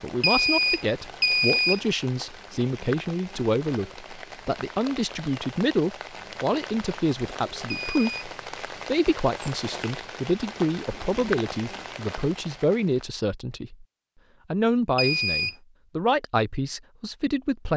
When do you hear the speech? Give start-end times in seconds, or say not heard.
0.0-13.8, 14.5-17.7.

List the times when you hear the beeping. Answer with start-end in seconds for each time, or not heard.
0.2-1.8, 7.7-8.3, 14.9-15.6.